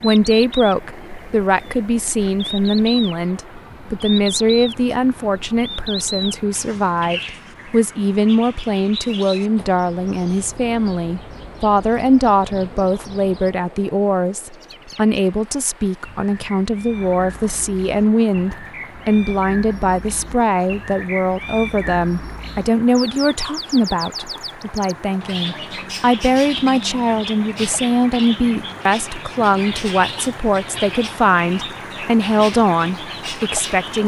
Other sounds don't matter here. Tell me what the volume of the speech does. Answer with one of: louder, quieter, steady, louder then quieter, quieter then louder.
steady.